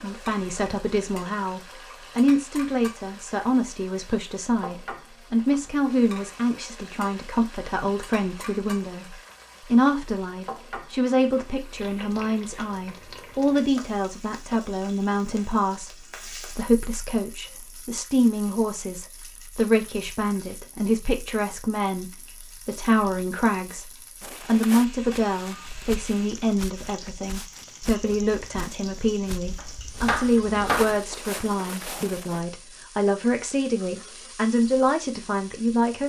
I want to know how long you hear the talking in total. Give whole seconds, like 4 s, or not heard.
36 s.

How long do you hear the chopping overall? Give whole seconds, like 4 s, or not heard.
3 s.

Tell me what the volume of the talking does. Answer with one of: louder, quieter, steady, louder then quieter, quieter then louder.
steady.